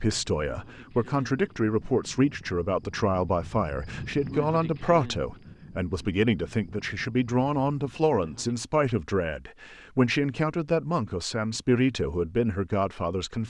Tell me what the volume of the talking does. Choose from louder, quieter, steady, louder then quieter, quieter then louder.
steady.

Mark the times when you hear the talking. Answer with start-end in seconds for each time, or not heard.
0.0-13.4.